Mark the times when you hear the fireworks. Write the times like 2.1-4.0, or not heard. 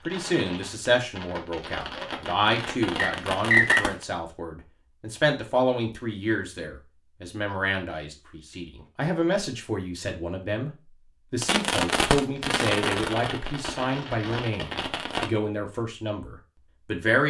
0.0-4.0, 11.4-15.3.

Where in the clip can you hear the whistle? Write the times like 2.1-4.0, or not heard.
3.0-3.9.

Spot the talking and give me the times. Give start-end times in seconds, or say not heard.
0.1-10.7, 11.3-17.2.